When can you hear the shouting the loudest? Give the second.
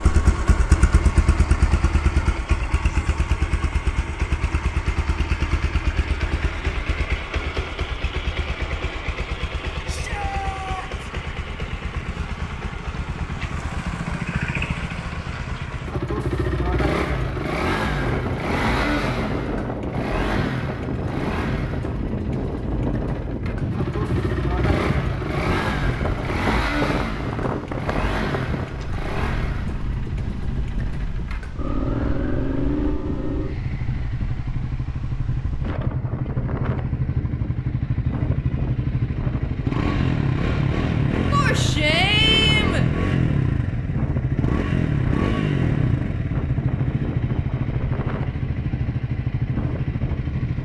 42 s.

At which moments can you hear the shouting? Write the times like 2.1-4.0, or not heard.
9.8-11.1, 41.3-42.9.